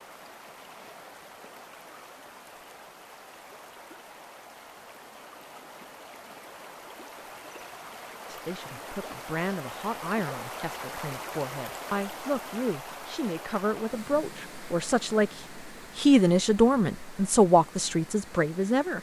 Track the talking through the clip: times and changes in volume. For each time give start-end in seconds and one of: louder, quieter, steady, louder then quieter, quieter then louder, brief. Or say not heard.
8.2-18.9 louder.